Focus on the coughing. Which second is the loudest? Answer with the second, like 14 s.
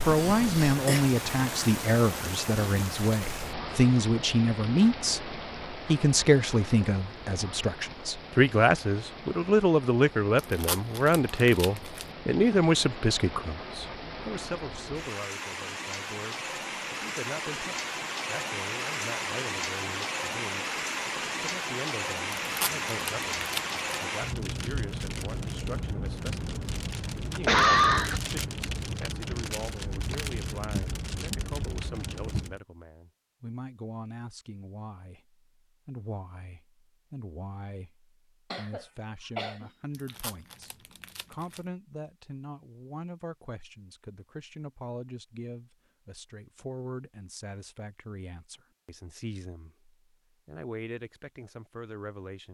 28 s.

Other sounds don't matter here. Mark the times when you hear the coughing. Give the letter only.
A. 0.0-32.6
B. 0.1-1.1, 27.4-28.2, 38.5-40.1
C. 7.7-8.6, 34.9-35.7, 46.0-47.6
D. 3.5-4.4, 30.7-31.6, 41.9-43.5
B.